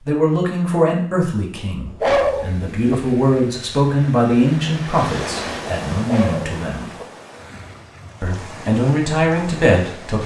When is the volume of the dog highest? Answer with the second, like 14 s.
2 s.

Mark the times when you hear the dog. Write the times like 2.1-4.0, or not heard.
1.9-3.0, 6.0-7.0.